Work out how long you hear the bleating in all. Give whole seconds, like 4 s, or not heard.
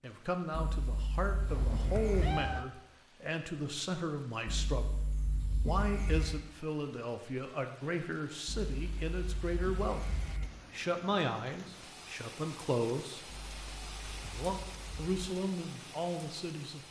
8 s.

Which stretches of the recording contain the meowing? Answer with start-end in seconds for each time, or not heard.
1.4-2.6.